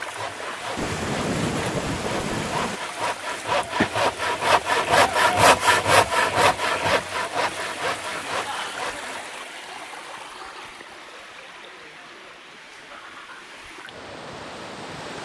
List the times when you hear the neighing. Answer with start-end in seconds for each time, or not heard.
not heard.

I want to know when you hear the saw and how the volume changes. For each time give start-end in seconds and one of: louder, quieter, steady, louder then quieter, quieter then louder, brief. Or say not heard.
0.0-9.3 louder then quieter.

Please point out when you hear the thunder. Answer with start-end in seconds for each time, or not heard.
0.8-2.8.